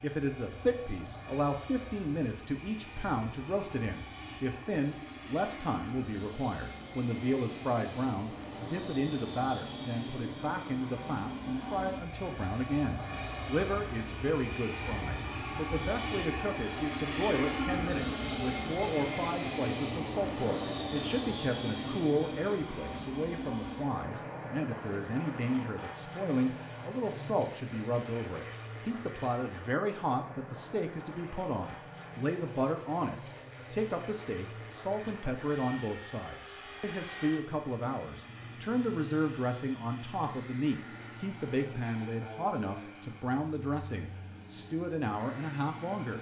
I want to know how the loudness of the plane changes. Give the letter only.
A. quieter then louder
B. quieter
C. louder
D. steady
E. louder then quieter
E.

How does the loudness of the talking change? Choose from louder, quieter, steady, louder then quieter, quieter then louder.
steady.